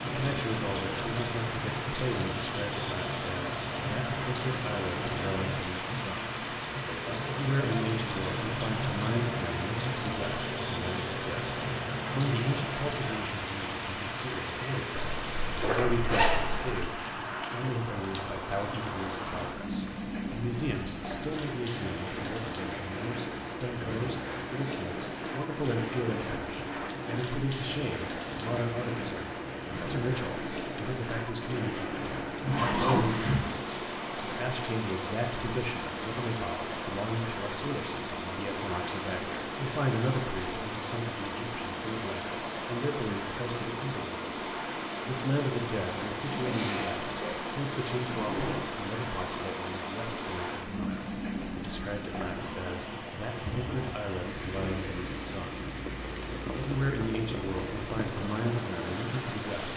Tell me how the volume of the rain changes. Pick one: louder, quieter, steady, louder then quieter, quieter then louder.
steady.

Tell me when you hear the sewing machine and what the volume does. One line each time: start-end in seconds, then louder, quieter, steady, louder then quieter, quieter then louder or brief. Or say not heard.
0.0-13.2 steady.